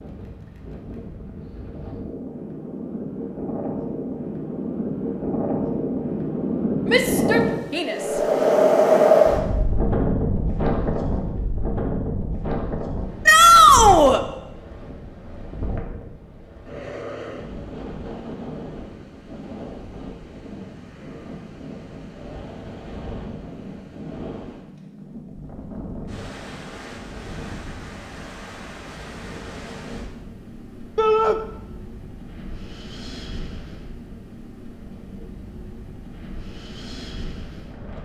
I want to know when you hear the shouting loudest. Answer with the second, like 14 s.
14 s.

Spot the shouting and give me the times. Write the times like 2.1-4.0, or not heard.
6.9-8.0, 13.2-14.2, 30.9-31.4.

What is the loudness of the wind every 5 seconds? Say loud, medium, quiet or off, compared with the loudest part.
quiet, loud, medium, quiet, quiet, quiet, quiet, quiet.